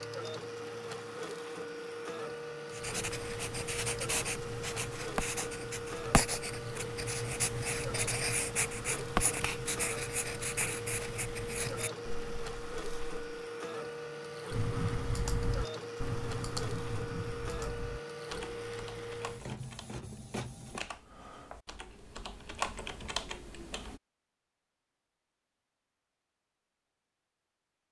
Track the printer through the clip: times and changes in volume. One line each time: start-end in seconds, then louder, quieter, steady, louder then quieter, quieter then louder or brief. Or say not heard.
0.0-20.8 steady.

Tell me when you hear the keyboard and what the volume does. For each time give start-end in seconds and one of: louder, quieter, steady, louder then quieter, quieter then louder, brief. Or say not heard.
14.5-24.0 quieter then louder.